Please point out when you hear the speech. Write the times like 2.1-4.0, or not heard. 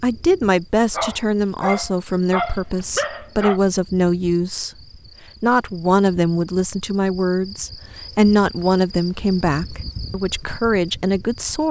0.0-4.7, 5.4-11.6.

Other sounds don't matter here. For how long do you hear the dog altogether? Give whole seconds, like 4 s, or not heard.
3 s.